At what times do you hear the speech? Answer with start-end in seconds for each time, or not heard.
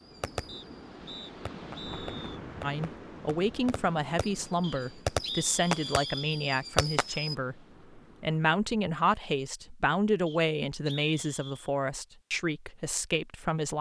2.6-13.7.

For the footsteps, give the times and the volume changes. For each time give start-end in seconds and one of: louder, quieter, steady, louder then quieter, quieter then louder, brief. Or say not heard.
not heard.